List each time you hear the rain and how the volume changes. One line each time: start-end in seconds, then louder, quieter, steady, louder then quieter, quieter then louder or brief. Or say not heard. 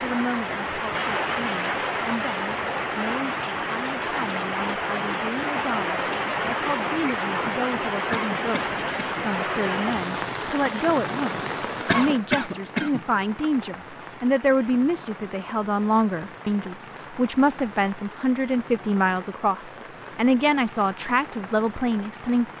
0.0-22.5 quieter.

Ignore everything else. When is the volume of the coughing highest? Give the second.
12 s.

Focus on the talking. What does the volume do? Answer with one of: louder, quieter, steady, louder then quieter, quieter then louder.
louder.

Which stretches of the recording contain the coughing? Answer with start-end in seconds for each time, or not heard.
8.1-9.2, 11.8-13.5.